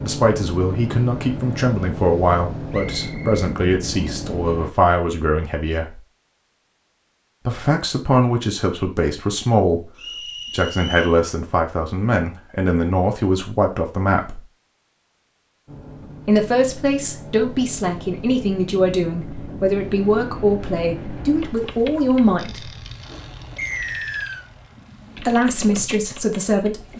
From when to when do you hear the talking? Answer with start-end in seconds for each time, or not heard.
0.0-6.0, 7.5-9.9, 10.5-14.4, 16.2-22.7, 25.1-26.9.